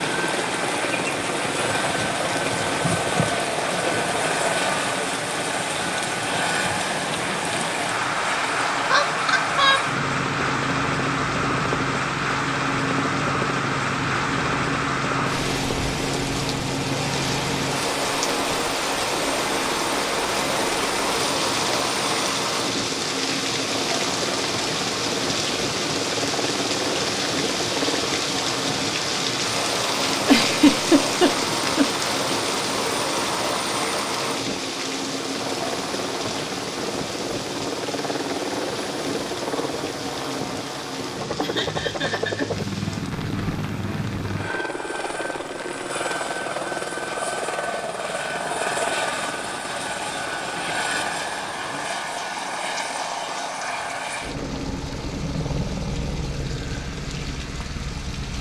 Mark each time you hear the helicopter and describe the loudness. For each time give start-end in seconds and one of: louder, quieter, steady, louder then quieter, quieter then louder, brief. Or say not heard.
0.0-58.3 steady.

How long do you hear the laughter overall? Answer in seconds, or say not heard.
4 s.